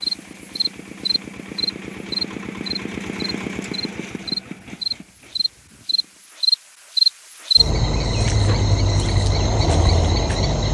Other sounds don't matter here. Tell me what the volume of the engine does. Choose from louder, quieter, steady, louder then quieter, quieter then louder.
louder then quieter.